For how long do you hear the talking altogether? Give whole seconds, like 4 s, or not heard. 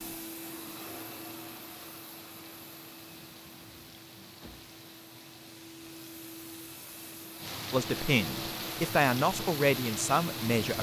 3 s.